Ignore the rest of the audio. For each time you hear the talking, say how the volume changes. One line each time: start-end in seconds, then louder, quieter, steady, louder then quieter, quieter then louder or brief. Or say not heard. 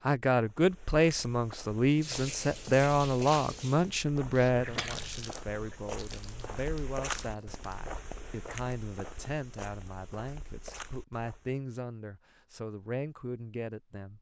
0.1-14.1 quieter.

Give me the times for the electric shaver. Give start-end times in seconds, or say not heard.
not heard.